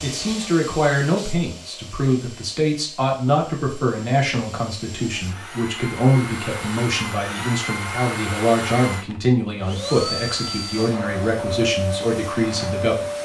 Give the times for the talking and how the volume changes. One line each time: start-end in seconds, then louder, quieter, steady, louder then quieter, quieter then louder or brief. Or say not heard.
0.0-13.1 steady.